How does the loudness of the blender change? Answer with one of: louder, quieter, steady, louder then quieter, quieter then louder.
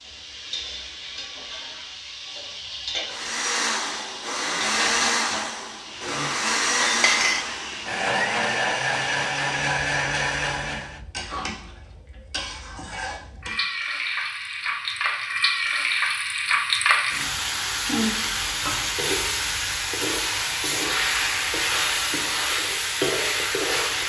steady.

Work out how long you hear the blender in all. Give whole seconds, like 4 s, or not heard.
8 s.